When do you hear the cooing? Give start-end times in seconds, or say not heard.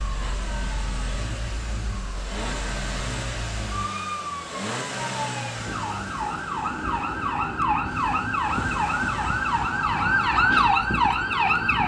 not heard.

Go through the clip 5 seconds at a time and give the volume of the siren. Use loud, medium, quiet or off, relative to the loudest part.
quiet, medium, loud.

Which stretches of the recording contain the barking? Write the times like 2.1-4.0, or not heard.
not heard.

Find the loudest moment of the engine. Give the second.
5 s.